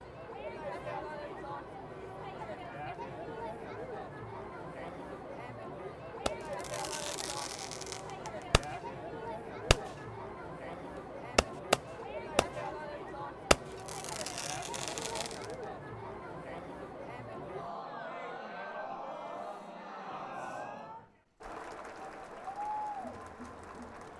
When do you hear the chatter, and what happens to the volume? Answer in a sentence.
The chatter can be heard from 0.0 to 24.1 s, at a steady volume.